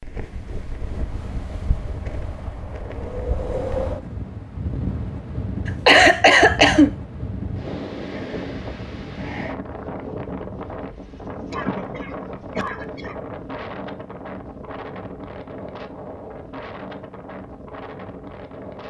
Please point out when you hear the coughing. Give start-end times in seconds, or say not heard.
5.7-7.0, 11.5-13.2.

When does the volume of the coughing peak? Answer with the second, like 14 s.
6 s.